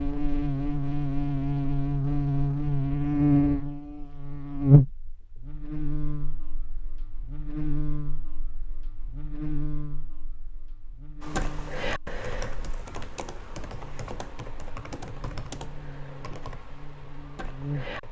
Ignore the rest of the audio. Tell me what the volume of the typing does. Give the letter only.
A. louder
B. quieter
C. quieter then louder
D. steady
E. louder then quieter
B.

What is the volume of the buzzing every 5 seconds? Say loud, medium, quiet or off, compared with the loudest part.
loud, quiet, quiet, quiet.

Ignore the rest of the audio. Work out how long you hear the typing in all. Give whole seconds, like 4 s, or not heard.
7 s.